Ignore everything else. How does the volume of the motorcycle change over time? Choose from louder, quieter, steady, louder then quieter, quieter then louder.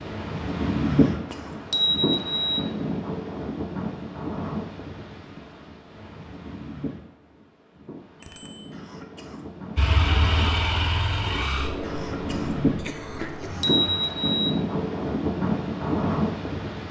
quieter.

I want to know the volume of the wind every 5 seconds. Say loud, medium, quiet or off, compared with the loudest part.
loud, quiet, loud, loud.